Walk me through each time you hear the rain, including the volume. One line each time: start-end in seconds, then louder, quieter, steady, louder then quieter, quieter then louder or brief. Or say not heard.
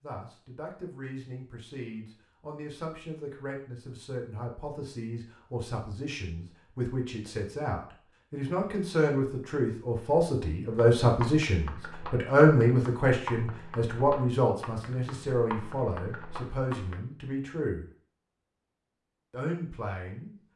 not heard.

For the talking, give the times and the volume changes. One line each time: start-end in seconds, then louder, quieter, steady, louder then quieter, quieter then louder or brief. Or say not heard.
0.0-17.9 louder then quieter
19.3-20.4 brief.